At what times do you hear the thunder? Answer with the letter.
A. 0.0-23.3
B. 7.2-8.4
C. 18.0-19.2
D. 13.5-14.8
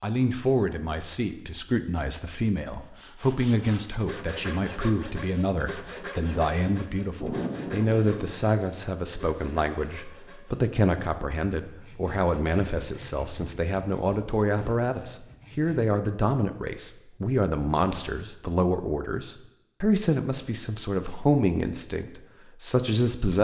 B.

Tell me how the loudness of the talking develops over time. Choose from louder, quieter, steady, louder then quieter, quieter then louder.
steady.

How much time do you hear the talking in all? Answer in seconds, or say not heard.
23 s.